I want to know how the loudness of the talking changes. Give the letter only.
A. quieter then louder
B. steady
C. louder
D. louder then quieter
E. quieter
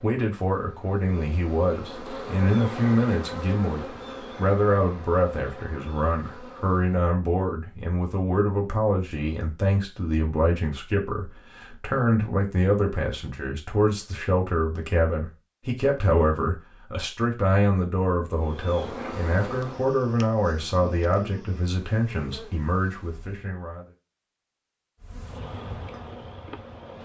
B.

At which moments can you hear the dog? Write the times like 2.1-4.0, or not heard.
not heard.